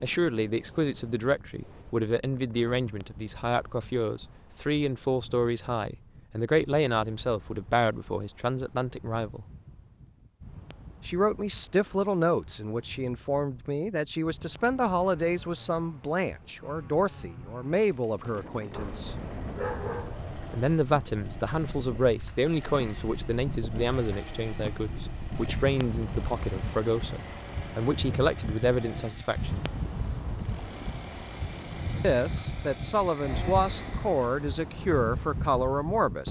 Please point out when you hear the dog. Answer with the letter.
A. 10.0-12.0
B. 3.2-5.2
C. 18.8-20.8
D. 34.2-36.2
C.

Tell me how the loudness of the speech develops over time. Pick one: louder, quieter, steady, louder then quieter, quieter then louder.
steady.